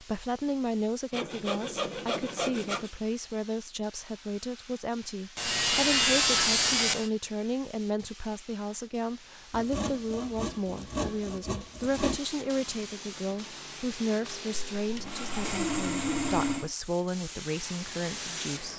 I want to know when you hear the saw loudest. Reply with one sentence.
The loudest moment of the saw is at 6 seconds.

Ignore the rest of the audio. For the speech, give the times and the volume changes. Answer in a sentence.
You can hear the speech from 0.0 to 18.7 s, at a steady volume.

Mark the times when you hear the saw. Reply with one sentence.
The saw can be heard from 1.1 to 2.9 s, from 5.3 to 7.1 s, from 9.5 to 12.2 s and from 14.8 to 16.7 s.